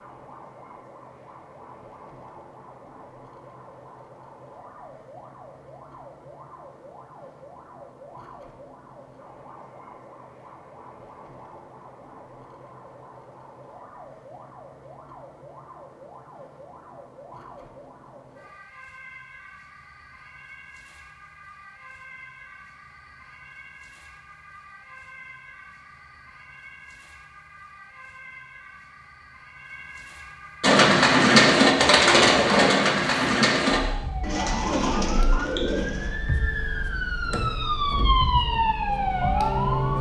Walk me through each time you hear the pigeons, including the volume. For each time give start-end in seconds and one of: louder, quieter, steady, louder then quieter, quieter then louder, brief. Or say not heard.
30.6-36.1 quieter.